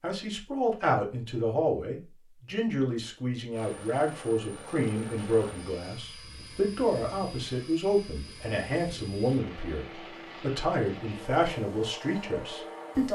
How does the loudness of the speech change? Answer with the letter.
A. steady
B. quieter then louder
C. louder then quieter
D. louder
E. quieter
A.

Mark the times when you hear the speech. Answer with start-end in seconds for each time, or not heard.
0.0-13.1.